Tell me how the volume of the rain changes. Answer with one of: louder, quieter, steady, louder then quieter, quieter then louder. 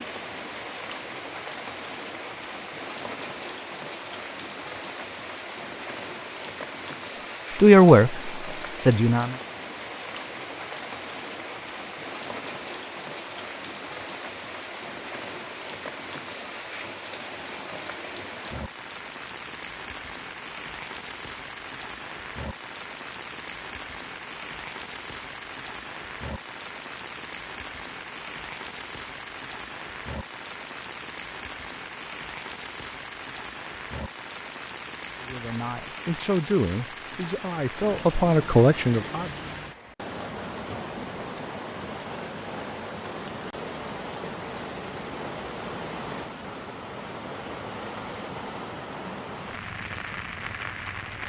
steady.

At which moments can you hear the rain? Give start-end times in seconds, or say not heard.
0.0-51.2.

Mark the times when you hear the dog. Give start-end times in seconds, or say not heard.
not heard.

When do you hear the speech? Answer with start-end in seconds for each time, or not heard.
7.5-9.3, 35.2-39.4.